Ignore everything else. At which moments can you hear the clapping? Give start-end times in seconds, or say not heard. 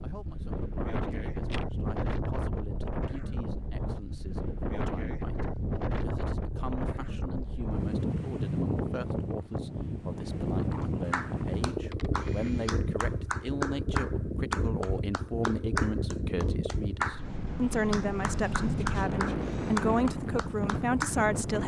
10.8-17.2, 17.9-21.1.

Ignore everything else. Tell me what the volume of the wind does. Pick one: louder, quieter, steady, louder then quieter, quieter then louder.
steady.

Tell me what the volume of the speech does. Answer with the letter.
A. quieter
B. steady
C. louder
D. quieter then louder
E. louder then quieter
C.